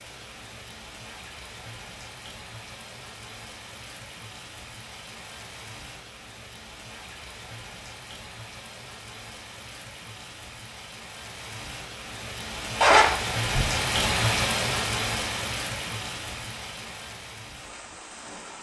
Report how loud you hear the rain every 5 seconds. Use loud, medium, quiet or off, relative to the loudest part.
quiet, quiet, loud, medium.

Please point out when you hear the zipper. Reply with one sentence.
The zipper can be heard from 12.8 to 13.8 s.